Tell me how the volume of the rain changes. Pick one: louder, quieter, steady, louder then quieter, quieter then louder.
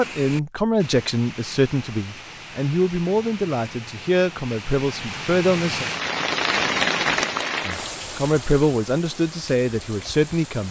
louder then quieter.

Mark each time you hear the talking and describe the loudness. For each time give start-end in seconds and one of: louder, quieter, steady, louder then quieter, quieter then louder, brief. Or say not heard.
0.0-5.8 steady
7.7-10.6 brief.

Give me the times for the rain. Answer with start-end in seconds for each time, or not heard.
0.0-10.6.